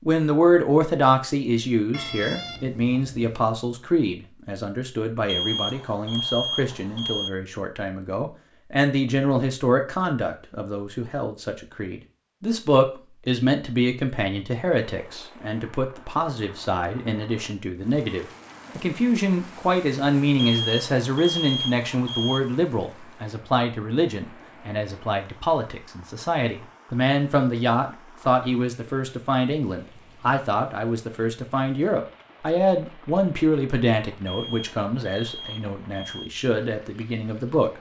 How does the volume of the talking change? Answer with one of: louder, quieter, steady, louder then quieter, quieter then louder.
steady.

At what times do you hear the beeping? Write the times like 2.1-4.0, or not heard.
5.2-7.3, 20.4-22.4, 34.2-36.3.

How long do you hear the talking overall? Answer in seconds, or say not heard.
38 s.